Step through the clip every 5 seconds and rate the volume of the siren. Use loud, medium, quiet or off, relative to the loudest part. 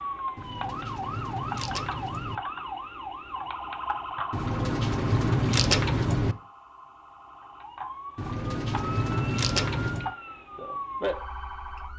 loud, medium, loud.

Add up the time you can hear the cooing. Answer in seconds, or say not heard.
6 s.